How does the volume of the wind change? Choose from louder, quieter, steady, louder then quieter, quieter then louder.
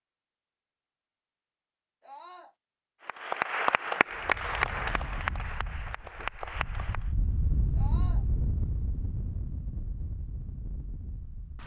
louder then quieter.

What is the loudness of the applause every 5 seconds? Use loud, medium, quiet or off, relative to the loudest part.
loud, medium, off.